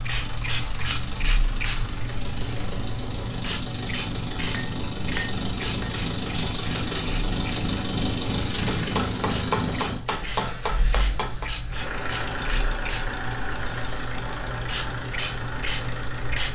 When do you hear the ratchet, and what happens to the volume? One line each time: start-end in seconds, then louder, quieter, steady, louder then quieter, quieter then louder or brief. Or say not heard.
not heard.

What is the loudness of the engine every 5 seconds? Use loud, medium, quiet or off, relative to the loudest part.
medium, loud, medium, medium.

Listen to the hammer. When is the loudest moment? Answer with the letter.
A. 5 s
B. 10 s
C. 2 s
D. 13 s
B.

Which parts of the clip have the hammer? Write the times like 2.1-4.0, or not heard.
4.5-6.0, 8.7-11.5.